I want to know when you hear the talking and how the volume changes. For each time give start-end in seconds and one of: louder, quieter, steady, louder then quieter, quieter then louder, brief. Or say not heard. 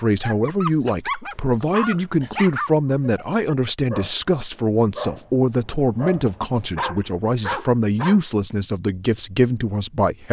0.0-10.2 steady.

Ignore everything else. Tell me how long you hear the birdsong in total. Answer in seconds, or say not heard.
not heard.